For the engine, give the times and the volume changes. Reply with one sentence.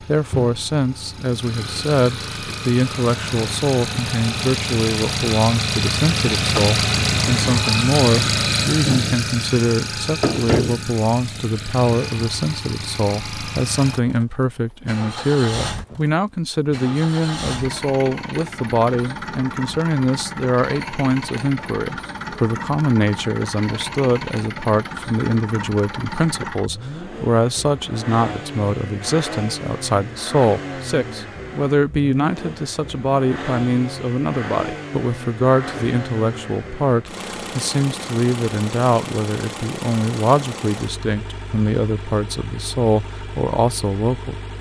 You can hear the engine from 0.0 to 44.5 s, getting quieter.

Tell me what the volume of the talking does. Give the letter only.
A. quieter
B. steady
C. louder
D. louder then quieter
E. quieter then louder
B.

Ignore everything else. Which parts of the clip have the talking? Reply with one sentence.
You can hear the talking from 0.0 to 44.4 s.